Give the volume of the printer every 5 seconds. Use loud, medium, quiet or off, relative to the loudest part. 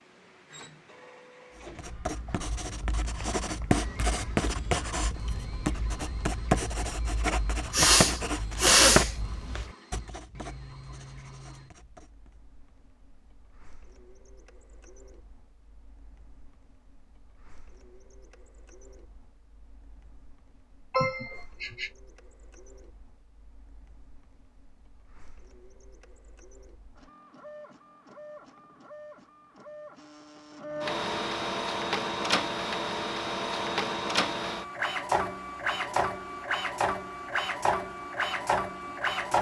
quiet, quiet, quiet, quiet, quiet, quiet, loud, loud.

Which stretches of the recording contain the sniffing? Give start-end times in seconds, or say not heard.
7.7-9.1, 20.9-21.9.